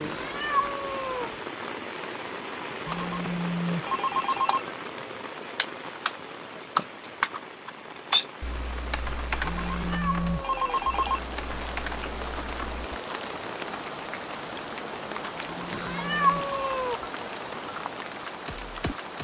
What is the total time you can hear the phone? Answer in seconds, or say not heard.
5 s.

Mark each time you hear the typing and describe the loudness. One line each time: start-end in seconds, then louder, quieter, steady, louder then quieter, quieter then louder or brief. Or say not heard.
2.9-12.8 louder then quieter.